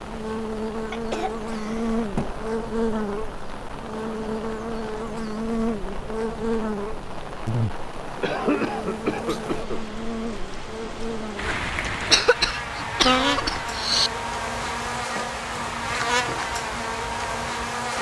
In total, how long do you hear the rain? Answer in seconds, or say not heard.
18 s.